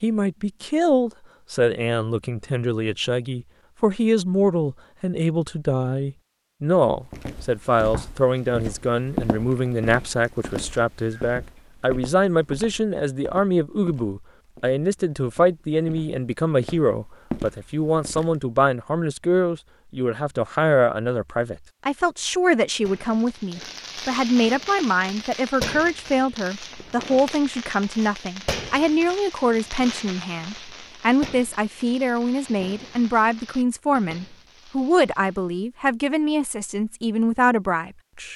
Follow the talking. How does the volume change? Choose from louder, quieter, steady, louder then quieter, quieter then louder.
steady.